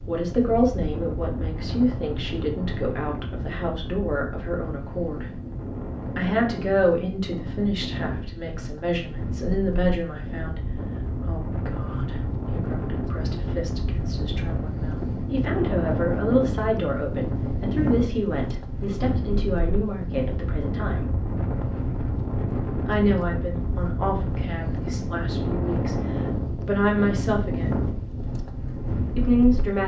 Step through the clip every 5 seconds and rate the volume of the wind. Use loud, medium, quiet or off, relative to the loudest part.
medium, medium, loud, loud, loud, loud.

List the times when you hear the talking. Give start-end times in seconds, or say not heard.
0.1-5.3, 6.2-21.1, 22.9-25.9, 26.6-27.8, 29.1-29.8.